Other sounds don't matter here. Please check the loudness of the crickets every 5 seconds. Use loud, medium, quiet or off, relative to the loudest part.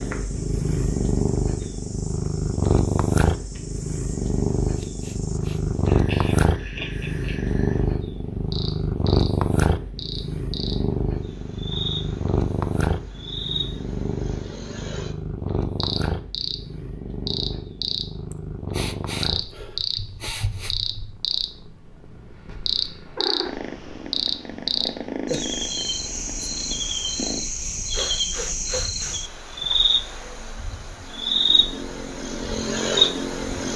quiet, quiet, medium, loud, loud, loud, loud.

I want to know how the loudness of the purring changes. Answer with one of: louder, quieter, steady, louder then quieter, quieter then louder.
quieter.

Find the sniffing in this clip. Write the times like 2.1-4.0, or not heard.
4.8-5.6, 18.3-20.8, 27.9-29.2.